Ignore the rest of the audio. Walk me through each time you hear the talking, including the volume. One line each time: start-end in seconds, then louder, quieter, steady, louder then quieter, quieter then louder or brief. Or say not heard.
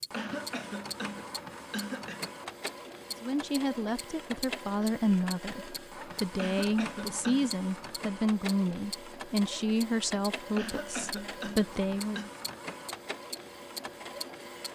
3.2-12.3 steady.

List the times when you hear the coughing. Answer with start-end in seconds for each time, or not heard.
0.1-2.4, 6.3-7.6, 10.6-12.3.